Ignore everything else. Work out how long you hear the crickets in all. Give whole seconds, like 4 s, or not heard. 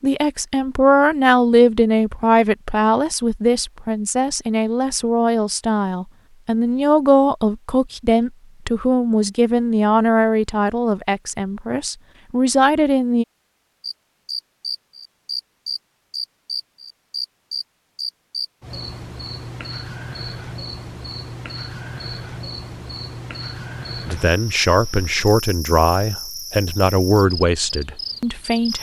15 s.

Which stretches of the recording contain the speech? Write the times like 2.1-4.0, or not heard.
0.0-13.2, 24.1-28.7.